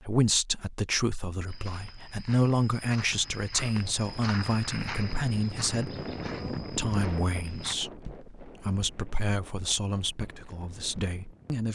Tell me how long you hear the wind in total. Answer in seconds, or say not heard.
8 s.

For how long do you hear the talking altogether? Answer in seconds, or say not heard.
12 s.